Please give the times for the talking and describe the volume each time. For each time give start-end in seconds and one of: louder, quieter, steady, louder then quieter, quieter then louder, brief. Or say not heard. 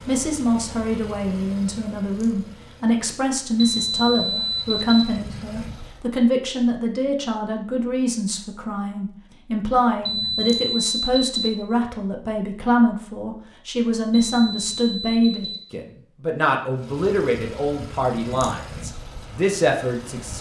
0.1-20.3 steady.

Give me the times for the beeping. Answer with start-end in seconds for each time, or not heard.
3.5-5.0, 10.1-11.6, 14.1-15.7.